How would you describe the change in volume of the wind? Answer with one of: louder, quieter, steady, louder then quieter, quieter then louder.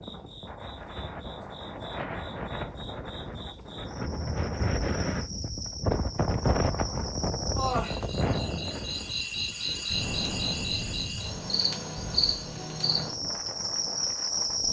louder then quieter.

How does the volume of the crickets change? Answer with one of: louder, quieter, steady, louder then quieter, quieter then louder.
louder.